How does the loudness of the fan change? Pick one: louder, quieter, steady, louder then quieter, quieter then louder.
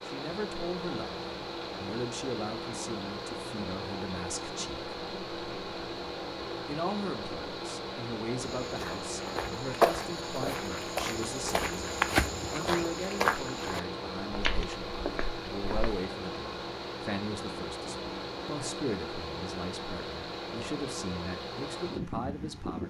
steady.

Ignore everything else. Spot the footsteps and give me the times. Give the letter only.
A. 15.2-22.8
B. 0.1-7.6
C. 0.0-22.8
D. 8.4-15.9
D.